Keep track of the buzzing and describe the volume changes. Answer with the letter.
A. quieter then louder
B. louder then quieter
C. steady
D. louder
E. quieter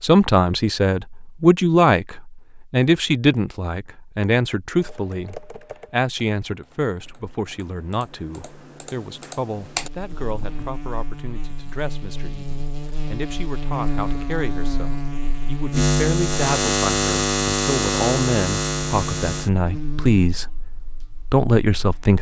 B.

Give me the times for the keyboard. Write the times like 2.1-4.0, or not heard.
4.8-10.7.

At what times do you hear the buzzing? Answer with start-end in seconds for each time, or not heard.
9.7-22.1.